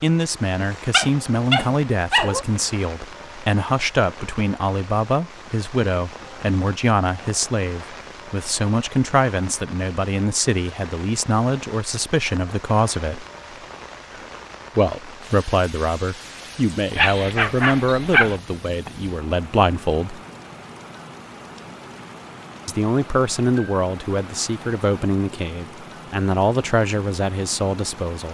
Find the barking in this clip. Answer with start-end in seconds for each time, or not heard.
0.6-2.5, 16.9-18.4.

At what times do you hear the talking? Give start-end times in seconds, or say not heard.
0.0-13.2, 14.8-20.2, 22.6-28.2.